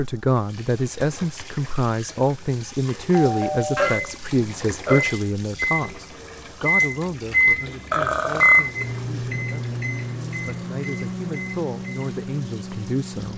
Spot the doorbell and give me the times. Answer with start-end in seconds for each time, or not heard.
3.2-4.0.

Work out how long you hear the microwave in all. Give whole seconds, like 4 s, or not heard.
9 s.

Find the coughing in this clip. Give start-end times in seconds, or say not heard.
not heard.